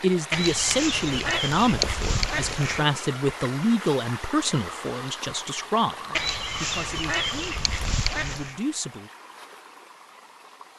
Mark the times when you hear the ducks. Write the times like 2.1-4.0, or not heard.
0.3-2.9, 6.1-8.6.